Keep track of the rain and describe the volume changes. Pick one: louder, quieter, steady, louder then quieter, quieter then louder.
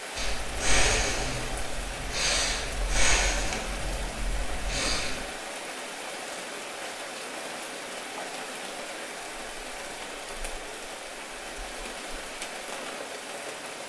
steady.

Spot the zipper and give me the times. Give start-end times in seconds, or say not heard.
not heard.